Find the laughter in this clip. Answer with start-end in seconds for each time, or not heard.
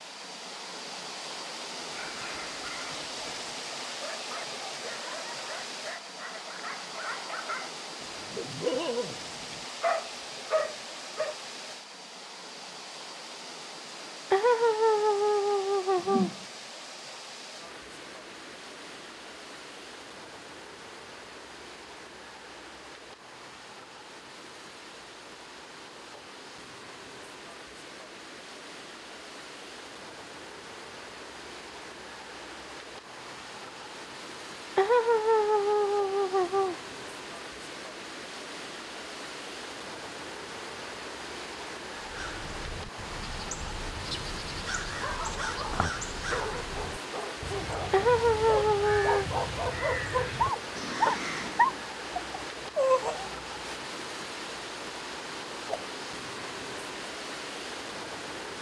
14.3-16.3, 34.8-36.8, 47.9-49.2.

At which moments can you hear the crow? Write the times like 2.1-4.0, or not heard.
42.0-51.9.